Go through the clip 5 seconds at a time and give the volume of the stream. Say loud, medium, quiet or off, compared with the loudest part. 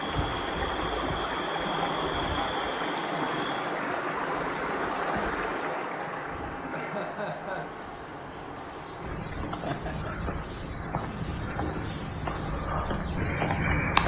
loud, medium, quiet.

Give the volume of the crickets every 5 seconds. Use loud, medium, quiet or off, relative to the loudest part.
quiet, loud, loud.